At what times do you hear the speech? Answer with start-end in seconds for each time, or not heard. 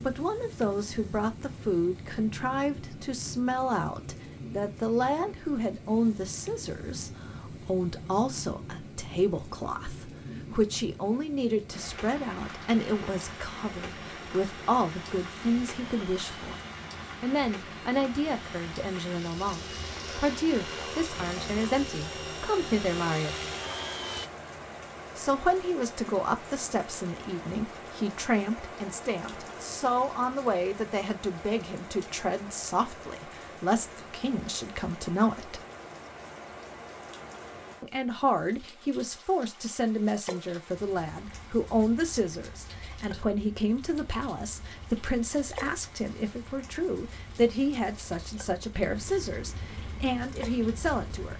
0.0-16.6, 17.2-23.5, 25.1-35.6, 37.8-51.3.